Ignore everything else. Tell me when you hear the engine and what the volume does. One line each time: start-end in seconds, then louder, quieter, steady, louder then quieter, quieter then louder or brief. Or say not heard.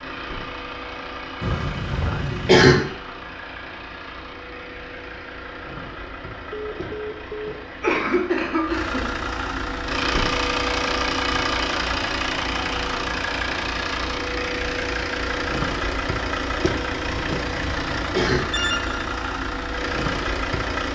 0.0-20.8 louder.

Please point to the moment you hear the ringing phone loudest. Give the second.
19 s.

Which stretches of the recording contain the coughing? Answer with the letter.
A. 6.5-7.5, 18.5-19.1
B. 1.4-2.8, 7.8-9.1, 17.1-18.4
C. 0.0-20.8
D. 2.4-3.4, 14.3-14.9
B.